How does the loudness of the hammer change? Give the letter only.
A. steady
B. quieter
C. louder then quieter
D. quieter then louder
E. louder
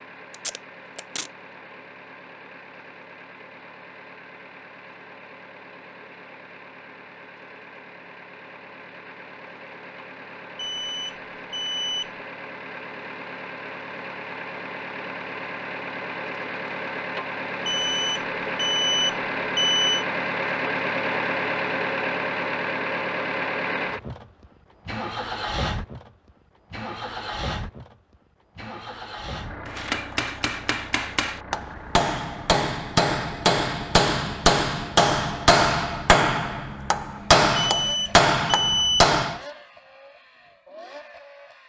E.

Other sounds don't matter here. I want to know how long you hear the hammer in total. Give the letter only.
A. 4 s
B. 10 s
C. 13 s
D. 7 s
B.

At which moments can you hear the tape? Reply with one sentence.
You can hear the tape from 0.3 to 1.3 s.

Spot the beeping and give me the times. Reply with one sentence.
You can hear the beeping from 10.6 to 12.1 s, from 17.6 to 20.1 s and from 37.5 to 39.0 s.